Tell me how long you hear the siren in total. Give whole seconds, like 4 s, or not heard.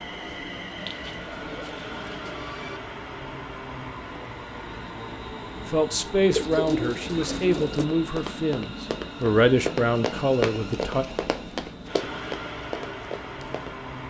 not heard.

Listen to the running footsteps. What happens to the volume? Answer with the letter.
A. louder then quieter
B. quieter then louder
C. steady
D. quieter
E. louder
A.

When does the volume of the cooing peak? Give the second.
7 s.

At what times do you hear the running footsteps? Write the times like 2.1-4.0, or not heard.
7.5-13.7.